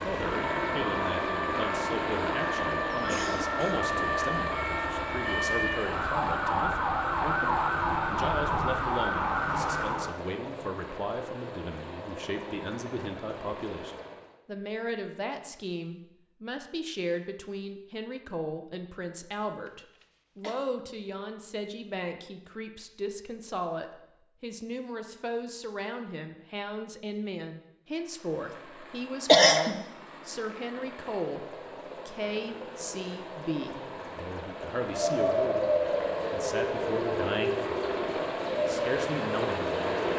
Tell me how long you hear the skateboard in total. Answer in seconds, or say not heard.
not heard.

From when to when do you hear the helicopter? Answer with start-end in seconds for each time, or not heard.
0.0-14.3, 27.9-40.1.